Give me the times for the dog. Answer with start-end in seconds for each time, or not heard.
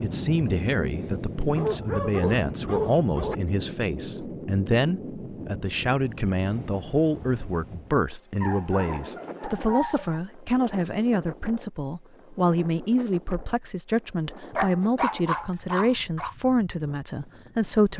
1.6-3.4, 8.4-10.2, 14.6-16.4.